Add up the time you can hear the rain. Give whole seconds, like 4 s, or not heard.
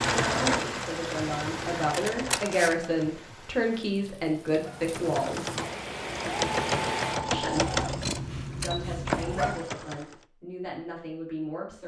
7 s.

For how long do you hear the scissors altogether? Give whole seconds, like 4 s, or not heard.
3 s.